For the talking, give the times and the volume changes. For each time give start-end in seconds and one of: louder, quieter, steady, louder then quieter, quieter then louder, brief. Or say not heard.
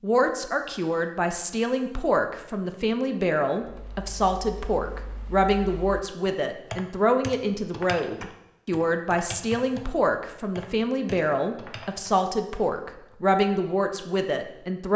0.0-14.9 steady.